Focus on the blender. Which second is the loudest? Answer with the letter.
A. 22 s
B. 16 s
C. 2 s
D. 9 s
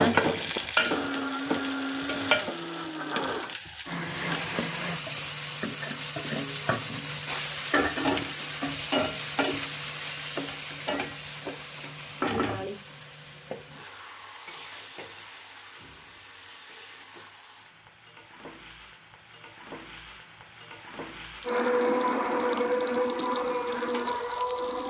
A.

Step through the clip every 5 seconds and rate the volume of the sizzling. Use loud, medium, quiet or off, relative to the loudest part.
loud, loud, medium, quiet, quiet.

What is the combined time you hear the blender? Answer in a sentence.
The blender can be heard for 8 seconds in total.